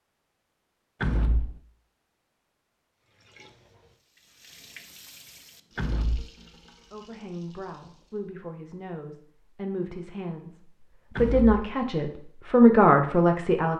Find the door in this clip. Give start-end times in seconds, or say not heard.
1.0-1.6, 5.8-6.3, 11.2-11.8.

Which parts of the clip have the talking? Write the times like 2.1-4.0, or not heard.
6.9-10.5, 11.2-13.7.